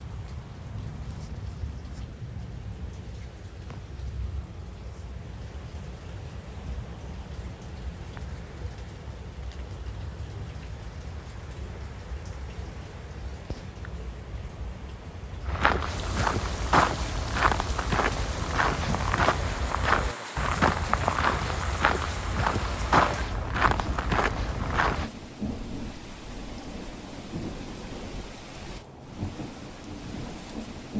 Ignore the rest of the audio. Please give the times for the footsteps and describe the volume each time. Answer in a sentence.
You can hear the footsteps from 15.4 to 25.1 s, at a steady volume.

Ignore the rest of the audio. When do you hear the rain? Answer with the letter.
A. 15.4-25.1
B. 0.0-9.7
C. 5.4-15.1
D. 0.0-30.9
D.